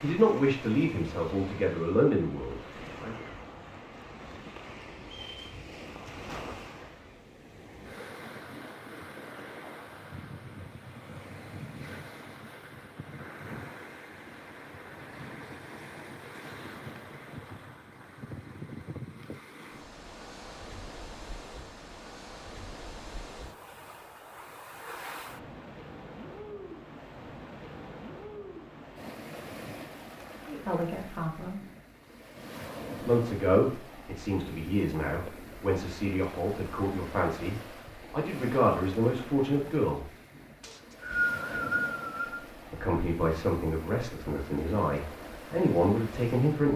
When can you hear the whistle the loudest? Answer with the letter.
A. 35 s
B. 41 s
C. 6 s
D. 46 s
B.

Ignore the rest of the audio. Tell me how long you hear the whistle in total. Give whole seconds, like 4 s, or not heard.
2 s.